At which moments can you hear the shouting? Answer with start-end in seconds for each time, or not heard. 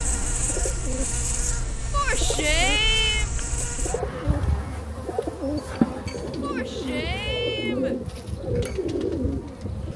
1.9-3.3, 6.4-8.0.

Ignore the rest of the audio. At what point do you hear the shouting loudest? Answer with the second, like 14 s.
3 s.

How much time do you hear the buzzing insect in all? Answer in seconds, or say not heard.
10 s.